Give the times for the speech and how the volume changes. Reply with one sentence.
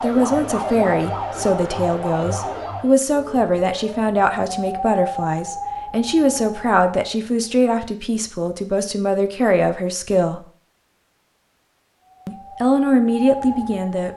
The speech can be heard from 0.0 to 10.4 s, at a steady volume; and briefly from 12.2 to 14.1 s.